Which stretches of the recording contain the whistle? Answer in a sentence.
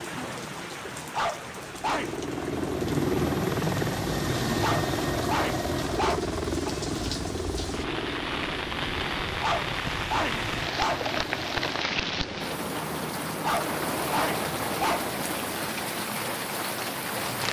You can't hear the whistle here.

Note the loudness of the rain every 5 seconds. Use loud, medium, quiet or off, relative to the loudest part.
medium, loud, loud, loud.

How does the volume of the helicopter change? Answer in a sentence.
The volume of the helicopter goes down.